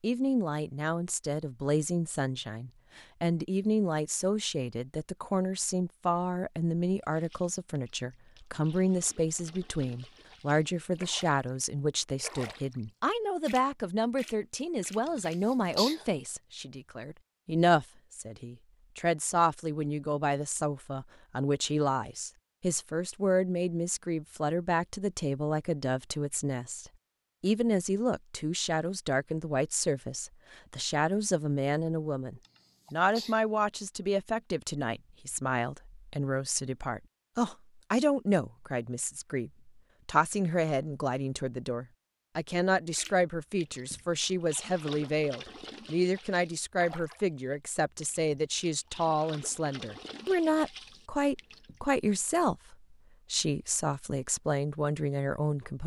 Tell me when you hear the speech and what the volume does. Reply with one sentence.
You can hear the speech from 0.0 to 55.8 s, at a steady volume.